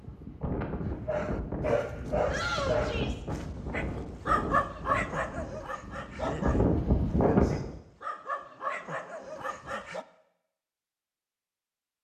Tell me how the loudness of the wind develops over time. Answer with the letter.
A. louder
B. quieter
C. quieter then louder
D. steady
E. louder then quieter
C.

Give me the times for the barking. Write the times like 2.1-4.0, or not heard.
0.8-10.1.